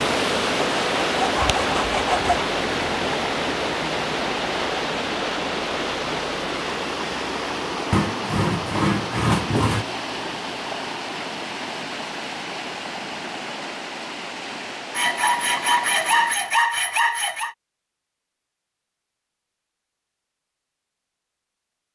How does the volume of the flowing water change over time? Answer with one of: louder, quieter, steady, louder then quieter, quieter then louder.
quieter.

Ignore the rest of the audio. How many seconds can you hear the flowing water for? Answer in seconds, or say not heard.
17 s.